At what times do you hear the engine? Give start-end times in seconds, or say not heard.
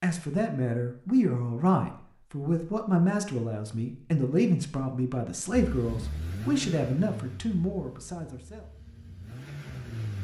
5.5-10.1.